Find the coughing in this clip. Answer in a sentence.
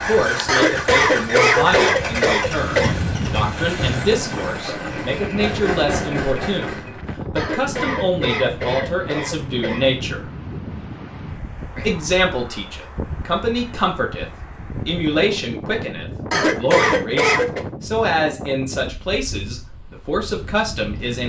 The coughing can be heard from 0.5 to 3.0 s, from 7.3 to 10.0 s and from 16.3 to 17.6 s.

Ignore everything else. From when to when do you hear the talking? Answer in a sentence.
You can hear the talking from 0.1 to 10.2 s and from 11.8 to 21.2 s.